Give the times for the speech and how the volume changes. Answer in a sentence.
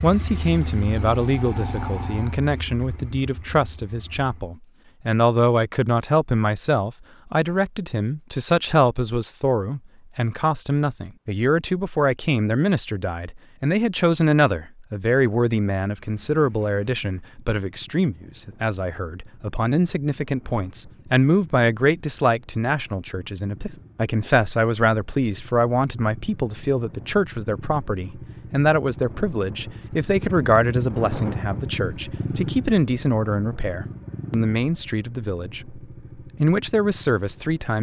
You can hear the speech from 0.0 to 37.7 s, at a steady volume.